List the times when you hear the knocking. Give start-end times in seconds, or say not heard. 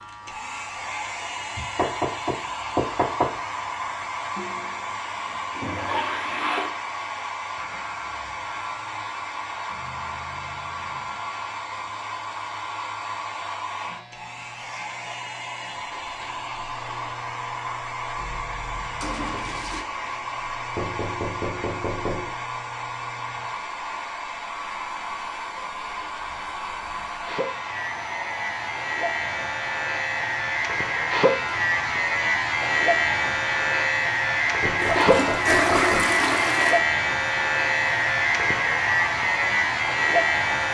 1.6-3.4, 20.8-22.4, 34.6-36.2.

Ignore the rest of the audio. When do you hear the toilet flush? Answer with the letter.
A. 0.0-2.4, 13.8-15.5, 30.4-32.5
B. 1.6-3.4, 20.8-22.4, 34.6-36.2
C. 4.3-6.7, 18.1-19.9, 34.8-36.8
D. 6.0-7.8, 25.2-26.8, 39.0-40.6
C.